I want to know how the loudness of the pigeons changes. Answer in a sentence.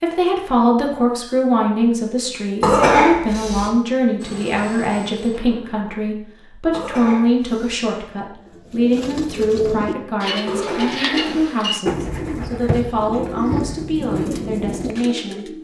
The loudness of the pigeons stays about the same.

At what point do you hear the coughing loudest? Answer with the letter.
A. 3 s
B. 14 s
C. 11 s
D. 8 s
A.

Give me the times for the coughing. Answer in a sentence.
You can hear the coughing from 2.6 to 3.7 s, from 6.7 to 7.8 s and from 10.4 to 11.6 s.